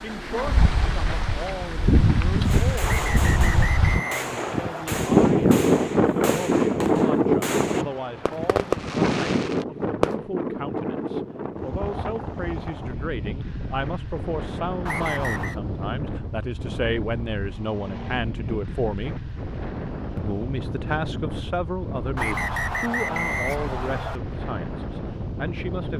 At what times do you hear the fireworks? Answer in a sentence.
You can hear the fireworks from 2.5 to 10.2 s.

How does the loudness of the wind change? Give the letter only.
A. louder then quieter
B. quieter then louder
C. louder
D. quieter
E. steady
D.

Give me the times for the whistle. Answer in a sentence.
You can hear the whistle from 2.9 to 4.8 s, from 14.8 to 15.6 s and from 22.1 to 24.2 s.